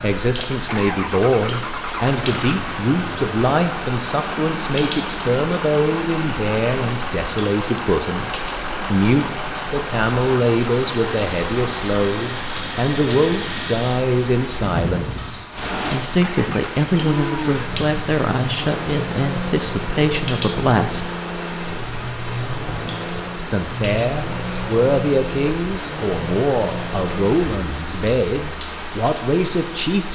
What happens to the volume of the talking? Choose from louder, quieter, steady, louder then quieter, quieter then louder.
steady.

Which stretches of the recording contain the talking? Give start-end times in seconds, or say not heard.
0.0-21.2, 23.5-30.1.